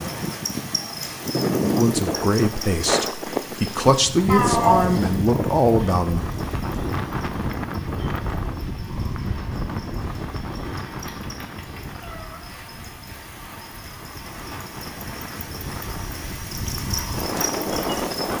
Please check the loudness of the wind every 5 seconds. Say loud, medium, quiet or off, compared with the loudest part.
loud, loud, medium, loud.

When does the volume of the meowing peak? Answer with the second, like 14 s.
5 s.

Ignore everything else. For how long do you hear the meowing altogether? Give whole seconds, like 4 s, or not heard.
3 s.